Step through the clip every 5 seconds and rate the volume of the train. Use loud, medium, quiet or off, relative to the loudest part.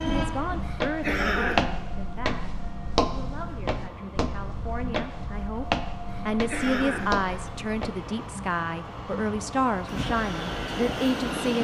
medium, medium, loud.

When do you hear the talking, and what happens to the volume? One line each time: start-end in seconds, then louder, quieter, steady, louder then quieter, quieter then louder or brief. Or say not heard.
0.0-11.5 quieter then louder.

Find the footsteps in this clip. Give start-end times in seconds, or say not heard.
0.3-7.9.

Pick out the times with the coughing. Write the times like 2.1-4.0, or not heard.
0.6-1.6, 6.0-7.5.